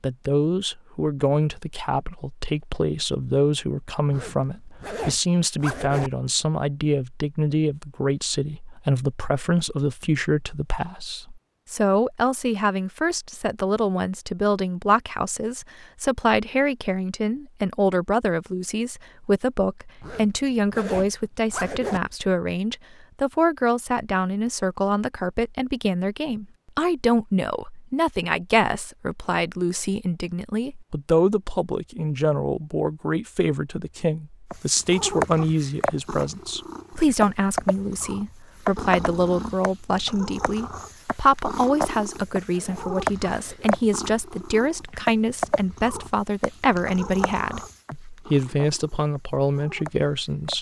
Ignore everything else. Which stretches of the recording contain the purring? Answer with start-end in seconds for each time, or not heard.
34.5-50.5.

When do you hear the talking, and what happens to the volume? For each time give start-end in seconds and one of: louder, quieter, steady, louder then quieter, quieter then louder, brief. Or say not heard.
0.0-50.5 steady.